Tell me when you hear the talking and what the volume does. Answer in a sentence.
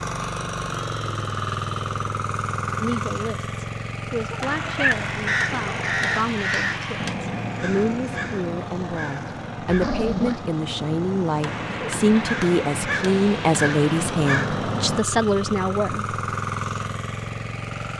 You can hear the talking from 2.8 to 16.1 s, getting louder.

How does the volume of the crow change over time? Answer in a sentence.
The volume of the crow goes down, then up.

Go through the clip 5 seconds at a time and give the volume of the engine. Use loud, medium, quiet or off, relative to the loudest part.
loud, medium, medium, loud.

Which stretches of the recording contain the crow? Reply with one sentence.
You can hear the crow from 5.2 to 15.0 s.